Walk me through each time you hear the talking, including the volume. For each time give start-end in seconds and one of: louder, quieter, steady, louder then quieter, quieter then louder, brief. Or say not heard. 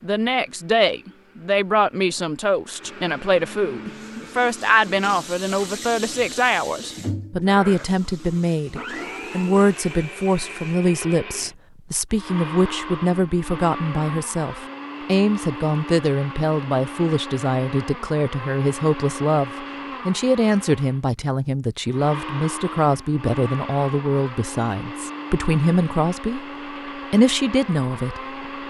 0.0-26.4 steady
27.1-28.2 brief.